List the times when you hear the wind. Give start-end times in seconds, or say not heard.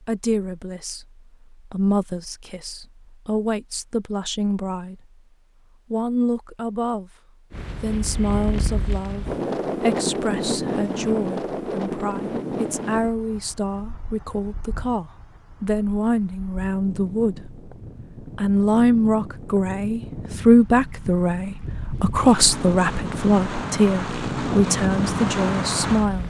7.5-26.2.